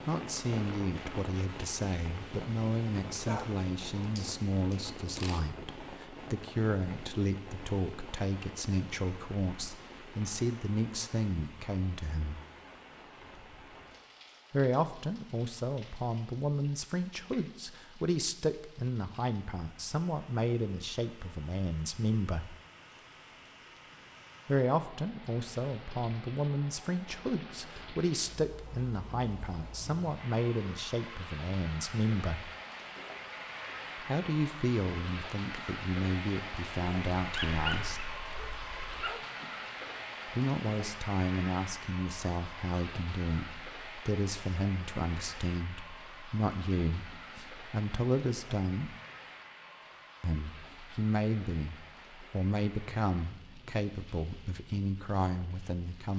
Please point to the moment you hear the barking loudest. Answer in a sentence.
The volume of the barking peaks at 38 seconds.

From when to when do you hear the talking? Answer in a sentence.
You can hear the talking from 0.1 to 12.4 s, from 14.5 to 22.6 s, from 24.4 to 32.5 s, from 34.0 to 38.1 s, from 40.2 to 49.0 s and from 50.2 to 56.1 s.